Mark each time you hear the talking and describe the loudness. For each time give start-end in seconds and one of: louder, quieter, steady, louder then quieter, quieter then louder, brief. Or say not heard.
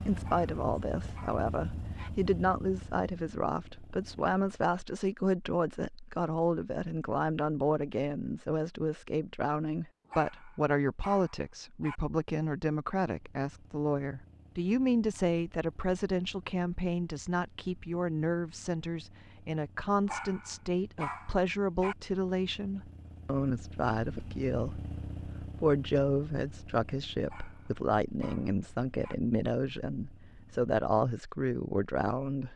0.1-32.5 steady.